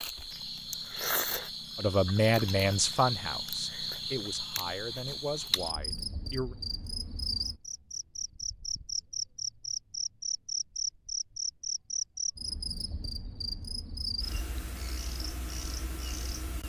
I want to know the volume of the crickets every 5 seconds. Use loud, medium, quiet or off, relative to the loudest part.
loud, loud, loud, medium.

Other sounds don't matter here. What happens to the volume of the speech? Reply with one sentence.
The loudness of the speech goes down.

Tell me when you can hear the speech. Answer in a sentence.
The speech can be heard from 1.8 to 6.5 s.